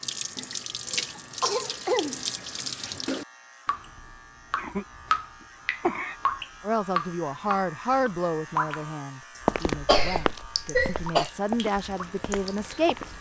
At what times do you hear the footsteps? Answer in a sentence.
The footsteps can be heard from 9.4 to 13.1 s.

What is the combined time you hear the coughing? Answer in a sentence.
The coughing can be heard for 5 seconds in total.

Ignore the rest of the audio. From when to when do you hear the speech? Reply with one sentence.
You can hear the speech from 6.6 to 13.1 s.